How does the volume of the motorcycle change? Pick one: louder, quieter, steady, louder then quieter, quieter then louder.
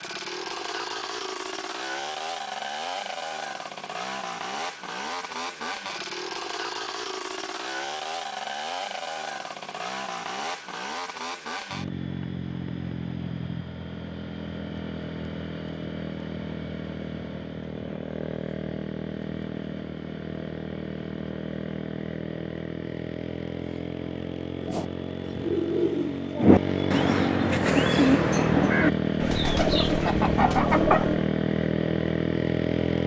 louder.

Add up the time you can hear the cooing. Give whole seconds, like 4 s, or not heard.
7 s.